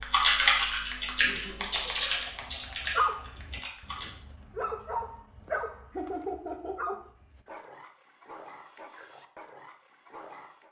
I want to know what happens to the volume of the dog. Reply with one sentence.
The loudness of the dog goes down.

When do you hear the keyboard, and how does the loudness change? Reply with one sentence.
The keyboard can be heard from 0.0 to 4.1 s, getting quieter.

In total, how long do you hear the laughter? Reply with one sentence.
You can hear the laughter for 3 seconds altogether.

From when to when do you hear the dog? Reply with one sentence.
You can hear the dog from 2.2 to 10.6 s.